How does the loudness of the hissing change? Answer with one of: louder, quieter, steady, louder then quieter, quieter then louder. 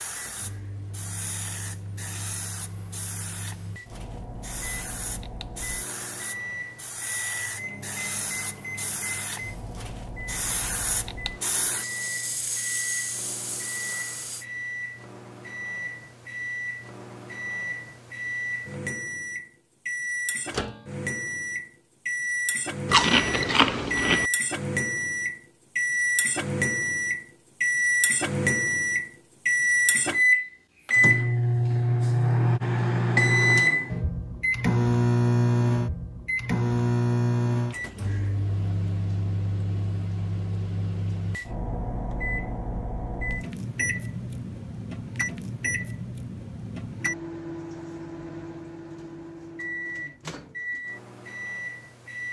louder.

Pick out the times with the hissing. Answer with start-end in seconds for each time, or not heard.
0.0-14.4.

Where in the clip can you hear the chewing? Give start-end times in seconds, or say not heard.
22.9-24.2.